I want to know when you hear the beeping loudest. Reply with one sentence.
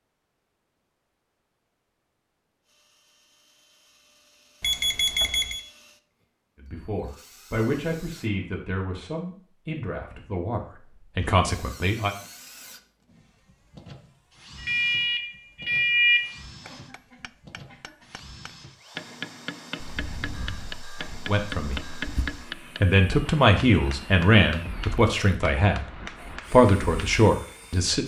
The loudest moment of the beeping is at 16 seconds.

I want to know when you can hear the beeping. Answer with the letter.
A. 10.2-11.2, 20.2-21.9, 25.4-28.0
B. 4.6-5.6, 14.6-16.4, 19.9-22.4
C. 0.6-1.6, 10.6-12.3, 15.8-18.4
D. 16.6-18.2
B.